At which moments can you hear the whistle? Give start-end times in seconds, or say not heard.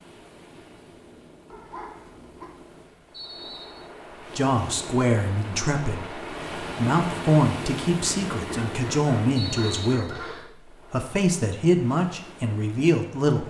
3.1-3.9, 9.3-10.5.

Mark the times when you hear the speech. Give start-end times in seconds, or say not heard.
4.3-13.4.